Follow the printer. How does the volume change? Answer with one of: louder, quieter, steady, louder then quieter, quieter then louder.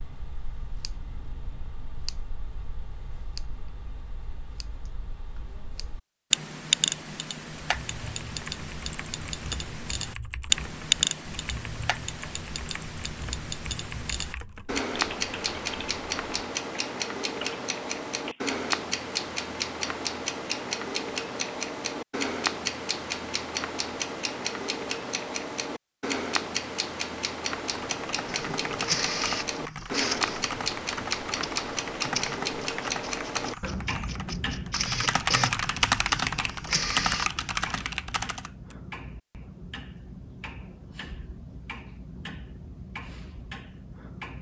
quieter then louder.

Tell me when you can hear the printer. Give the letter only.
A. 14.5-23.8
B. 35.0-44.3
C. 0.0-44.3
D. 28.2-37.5
D.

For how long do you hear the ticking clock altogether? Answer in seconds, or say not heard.
44 s.